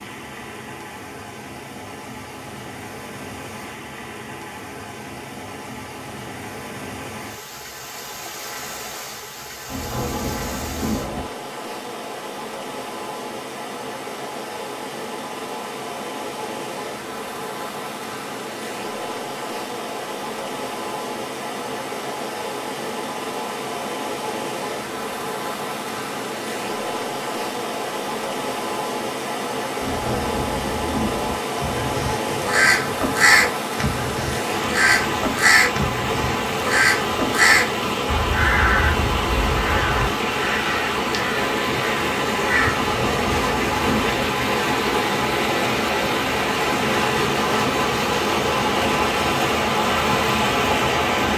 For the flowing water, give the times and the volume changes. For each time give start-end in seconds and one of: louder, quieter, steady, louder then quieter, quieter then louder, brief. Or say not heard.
0.0-51.3 louder.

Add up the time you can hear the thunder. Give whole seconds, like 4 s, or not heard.
5 s.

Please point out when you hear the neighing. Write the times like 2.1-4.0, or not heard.
not heard.